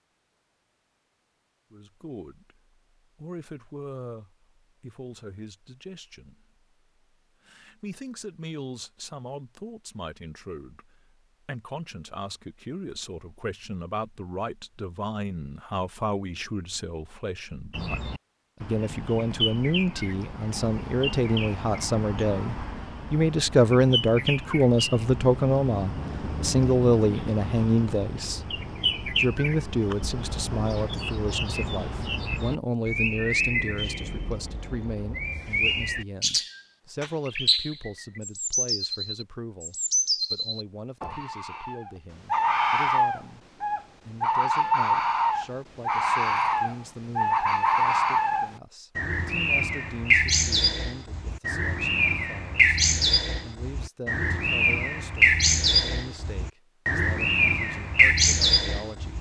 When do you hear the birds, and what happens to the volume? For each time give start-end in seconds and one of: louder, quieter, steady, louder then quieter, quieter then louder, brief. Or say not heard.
17.7-59.1 louder.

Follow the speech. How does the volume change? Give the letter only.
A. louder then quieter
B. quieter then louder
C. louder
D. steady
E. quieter
A.